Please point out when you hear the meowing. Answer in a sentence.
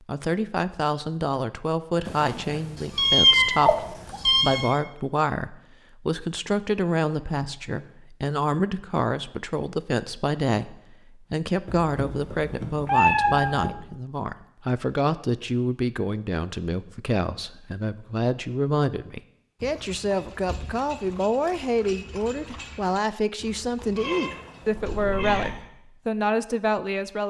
The meowing can be heard from 2.0 to 4.8 s, from 11.7 to 13.7 s and from 23.9 to 25.6 s.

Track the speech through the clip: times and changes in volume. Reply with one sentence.
The speech can be heard from 0.1 to 27.2 s, at a steady volume.